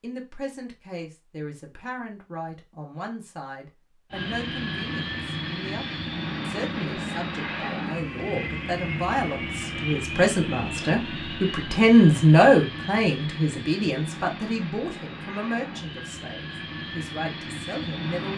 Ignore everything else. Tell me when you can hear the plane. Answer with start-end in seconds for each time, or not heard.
4.1-18.3.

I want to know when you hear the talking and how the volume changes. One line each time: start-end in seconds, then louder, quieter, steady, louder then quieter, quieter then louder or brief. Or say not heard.
0.0-18.3 louder then quieter.